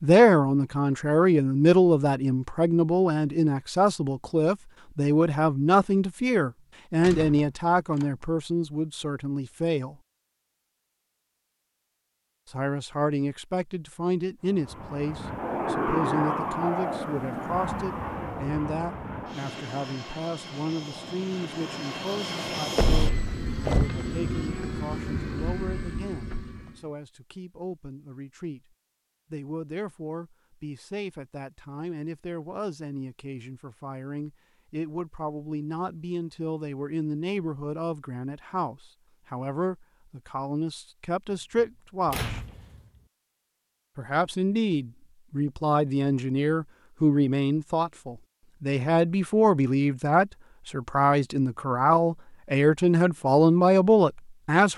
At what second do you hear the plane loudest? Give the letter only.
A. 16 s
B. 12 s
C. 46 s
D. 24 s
A.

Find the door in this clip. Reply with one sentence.
The door can be heard from 7.0 to 8.1 s, from 22.8 to 23.9 s and from 41.6 to 42.8 s.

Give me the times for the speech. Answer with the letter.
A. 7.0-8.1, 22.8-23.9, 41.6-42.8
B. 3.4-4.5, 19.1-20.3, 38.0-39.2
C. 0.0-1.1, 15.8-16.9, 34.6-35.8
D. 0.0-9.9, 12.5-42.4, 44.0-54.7
D.